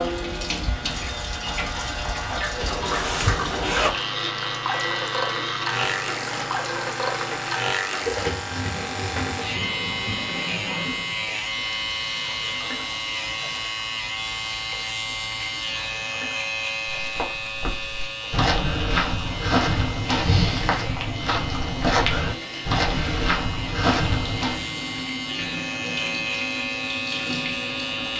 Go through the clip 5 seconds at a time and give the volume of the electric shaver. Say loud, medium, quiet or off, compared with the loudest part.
loud, loud, loud, loud, medium, loud.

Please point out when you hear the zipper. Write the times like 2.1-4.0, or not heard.
2.6-4.0.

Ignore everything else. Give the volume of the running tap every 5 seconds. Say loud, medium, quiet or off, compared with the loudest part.
loud, loud, medium, medium, medium, loud.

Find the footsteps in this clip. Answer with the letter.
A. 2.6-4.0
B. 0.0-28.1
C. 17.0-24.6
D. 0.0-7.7
C.